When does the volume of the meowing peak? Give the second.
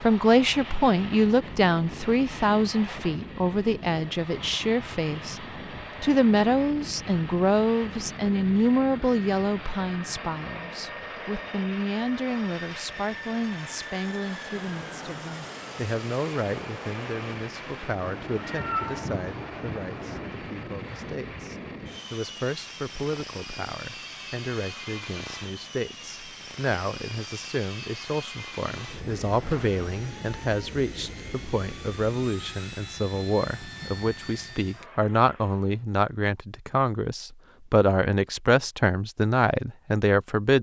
19 s.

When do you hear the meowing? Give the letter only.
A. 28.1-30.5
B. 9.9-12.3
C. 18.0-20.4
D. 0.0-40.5
C.